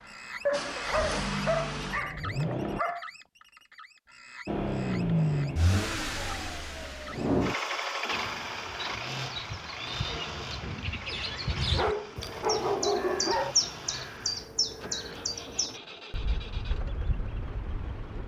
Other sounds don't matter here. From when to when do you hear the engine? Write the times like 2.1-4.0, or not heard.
0.0-2.8, 4.5-18.2.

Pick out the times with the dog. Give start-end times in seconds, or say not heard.
0.5-3.0, 11.7-13.6.